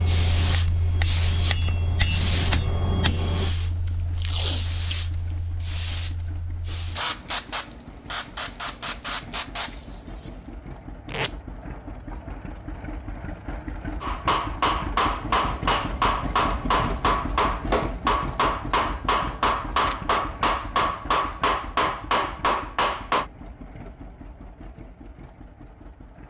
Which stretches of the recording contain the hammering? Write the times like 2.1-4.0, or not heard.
0.0-3.5, 14.0-23.2.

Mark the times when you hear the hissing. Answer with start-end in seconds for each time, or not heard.
0.0-10.6.